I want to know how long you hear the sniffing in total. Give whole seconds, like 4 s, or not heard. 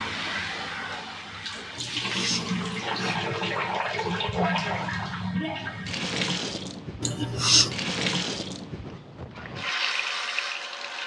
2 s.